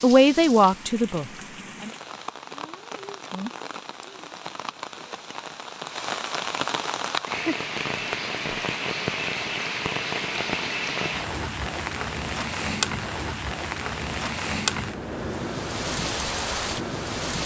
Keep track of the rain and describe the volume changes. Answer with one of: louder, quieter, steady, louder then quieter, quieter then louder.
louder.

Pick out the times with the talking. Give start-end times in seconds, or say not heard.
0.0-1.9.